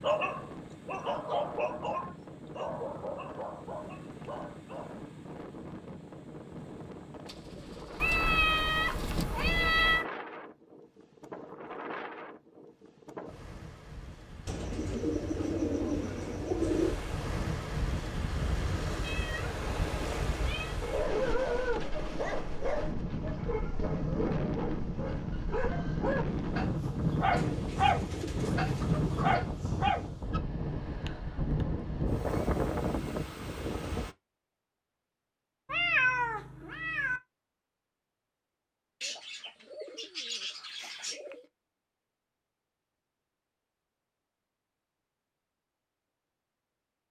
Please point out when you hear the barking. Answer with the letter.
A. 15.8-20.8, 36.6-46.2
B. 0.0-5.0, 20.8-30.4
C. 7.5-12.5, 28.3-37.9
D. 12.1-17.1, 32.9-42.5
B.